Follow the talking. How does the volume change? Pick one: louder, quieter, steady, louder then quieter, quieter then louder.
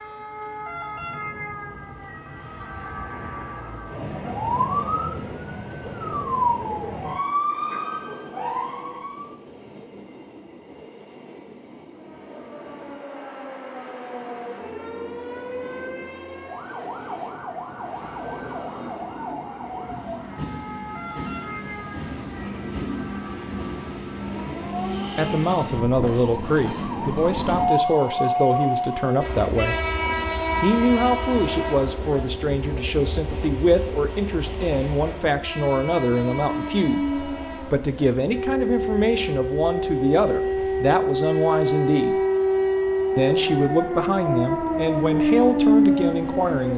steady.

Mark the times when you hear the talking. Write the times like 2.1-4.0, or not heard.
25.1-29.8, 30.6-42.2, 43.1-46.7.